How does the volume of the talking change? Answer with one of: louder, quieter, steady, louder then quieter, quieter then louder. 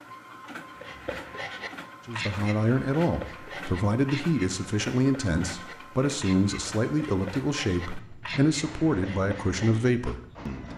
steady.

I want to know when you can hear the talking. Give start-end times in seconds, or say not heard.
2.0-10.7.